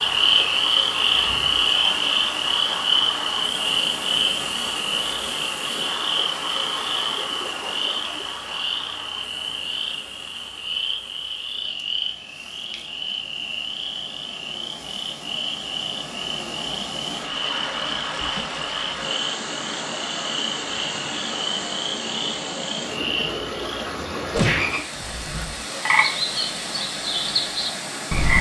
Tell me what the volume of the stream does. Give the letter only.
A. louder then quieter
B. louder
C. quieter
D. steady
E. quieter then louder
E.